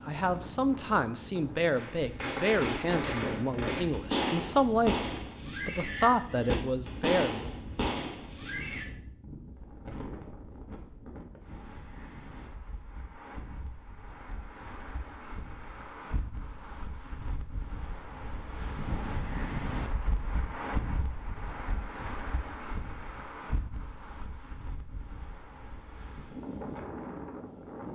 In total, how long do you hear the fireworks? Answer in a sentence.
You can hear the fireworks for 7 seconds altogether.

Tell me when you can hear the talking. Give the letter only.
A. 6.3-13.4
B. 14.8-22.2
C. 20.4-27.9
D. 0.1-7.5
D.